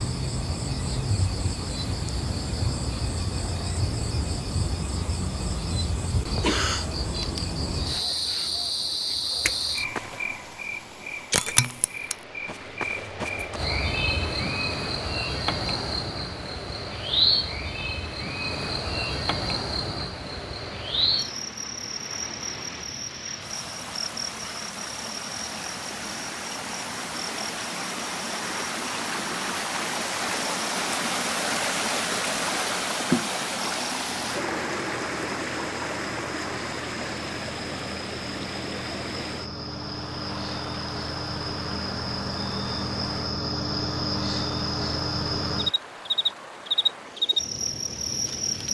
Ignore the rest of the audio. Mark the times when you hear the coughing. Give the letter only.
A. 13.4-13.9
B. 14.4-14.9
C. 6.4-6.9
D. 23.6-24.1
C.